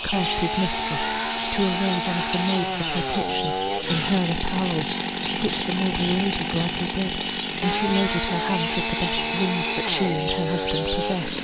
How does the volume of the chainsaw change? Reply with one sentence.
The volume of the chainsaw stays about the same.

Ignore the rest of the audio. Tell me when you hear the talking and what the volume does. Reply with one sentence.
The talking can be heard from 0.0 to 11.3 s, at a steady volume.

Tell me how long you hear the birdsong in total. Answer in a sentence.
The birdsong can be heard for 11 seconds in total.